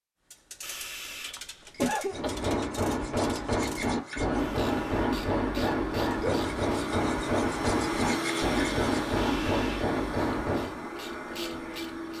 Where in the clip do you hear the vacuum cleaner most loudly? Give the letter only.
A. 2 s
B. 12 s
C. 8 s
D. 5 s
C.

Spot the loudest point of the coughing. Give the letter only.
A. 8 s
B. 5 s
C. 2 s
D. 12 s
C.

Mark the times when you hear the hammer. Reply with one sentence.
You can hear the hammer from 2.1 to 10.8 s.